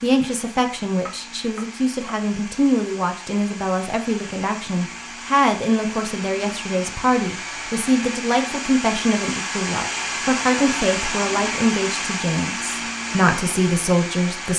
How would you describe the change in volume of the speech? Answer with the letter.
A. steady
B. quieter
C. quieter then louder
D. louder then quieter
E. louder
A.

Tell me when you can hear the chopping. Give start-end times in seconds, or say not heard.
1.1-2.1.